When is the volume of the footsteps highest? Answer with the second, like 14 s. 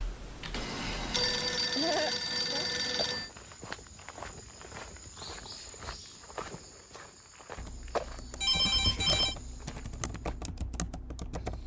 8 s.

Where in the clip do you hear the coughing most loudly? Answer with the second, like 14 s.
2 s.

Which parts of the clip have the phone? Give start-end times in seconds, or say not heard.
0.6-3.3, 8.4-9.3.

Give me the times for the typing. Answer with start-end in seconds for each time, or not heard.
0.0-1.6, 7.5-11.6.